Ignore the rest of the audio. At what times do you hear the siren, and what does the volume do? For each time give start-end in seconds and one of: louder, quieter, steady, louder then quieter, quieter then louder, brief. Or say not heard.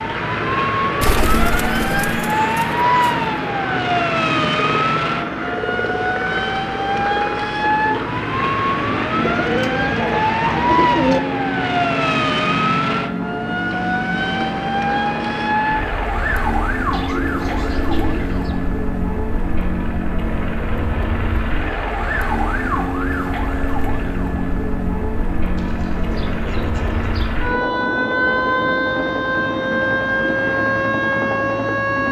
0.0-32.0 quieter then louder.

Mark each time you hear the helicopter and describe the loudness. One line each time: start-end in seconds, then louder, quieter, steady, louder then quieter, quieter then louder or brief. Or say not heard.
0.0-32.0 steady.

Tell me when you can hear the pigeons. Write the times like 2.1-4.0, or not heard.
1.0-3.1, 9.2-11.2, 16.9-18.6, 25.6-27.4.